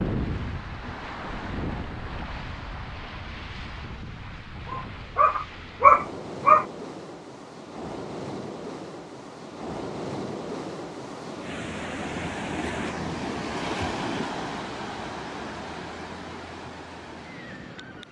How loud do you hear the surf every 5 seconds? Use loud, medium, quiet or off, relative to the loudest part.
loud, medium, loud, medium.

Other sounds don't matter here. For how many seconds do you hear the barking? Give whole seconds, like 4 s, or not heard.
2 s.